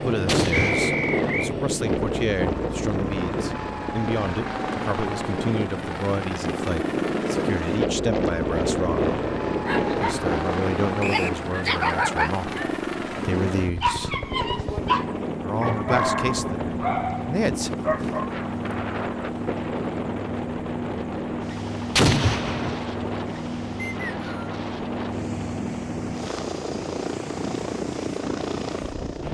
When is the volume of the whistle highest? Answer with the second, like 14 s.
1 s.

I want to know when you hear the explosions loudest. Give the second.
22 s.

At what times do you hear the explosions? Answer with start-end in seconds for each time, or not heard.
0.2-0.9, 21.9-22.8.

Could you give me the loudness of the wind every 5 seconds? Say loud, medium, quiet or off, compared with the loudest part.
loud, loud, medium, medium, medium, medium.